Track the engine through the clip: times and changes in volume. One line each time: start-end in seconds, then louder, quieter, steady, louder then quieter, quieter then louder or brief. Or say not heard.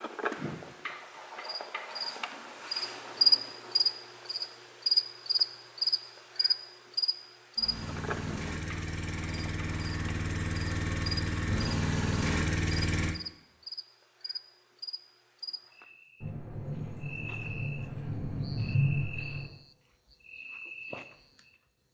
7.5-13.2 louder.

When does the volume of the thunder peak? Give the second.
19 s.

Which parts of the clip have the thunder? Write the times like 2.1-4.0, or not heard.
16.2-19.4.